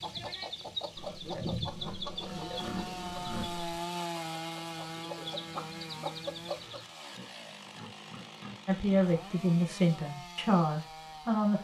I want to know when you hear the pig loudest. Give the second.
3 s.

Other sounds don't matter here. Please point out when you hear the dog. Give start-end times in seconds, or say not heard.
not heard.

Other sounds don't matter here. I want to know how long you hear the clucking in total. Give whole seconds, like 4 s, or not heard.
7 s.